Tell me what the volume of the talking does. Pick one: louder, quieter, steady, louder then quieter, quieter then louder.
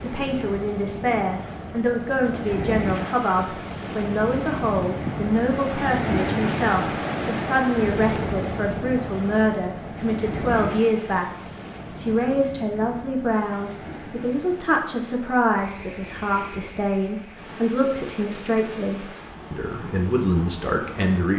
steady.